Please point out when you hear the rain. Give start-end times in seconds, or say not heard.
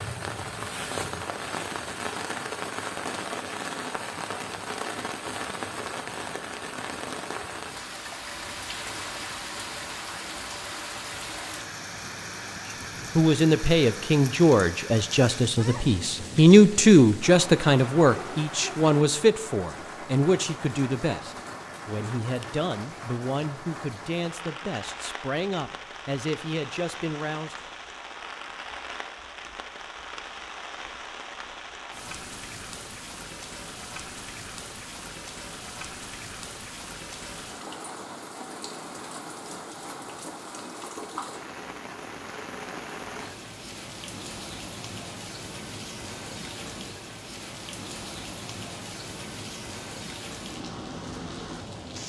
0.0-52.0.